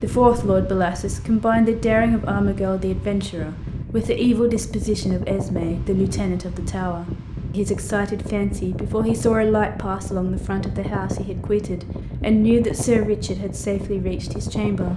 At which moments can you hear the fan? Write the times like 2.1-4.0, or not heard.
0.0-14.9.